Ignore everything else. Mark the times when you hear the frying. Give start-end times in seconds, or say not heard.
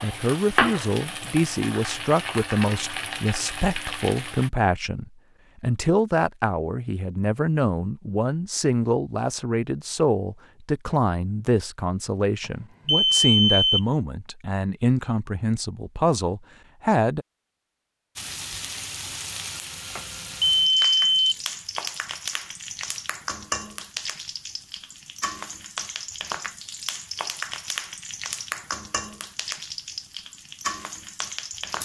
0.0-4.5, 18.1-31.8.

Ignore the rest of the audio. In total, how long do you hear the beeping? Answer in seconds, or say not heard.
3 s.